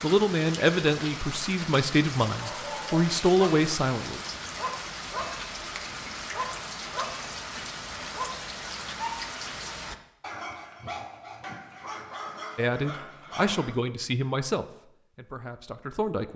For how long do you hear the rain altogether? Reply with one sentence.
The rain can be heard for 10 seconds in total.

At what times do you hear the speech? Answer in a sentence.
You can hear the speech from 0.0 to 4.2 s and from 12.6 to 16.3 s.